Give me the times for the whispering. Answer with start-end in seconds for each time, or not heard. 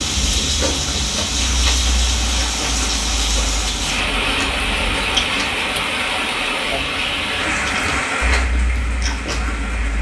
not heard.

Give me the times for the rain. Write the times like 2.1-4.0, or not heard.
0.0-9.9.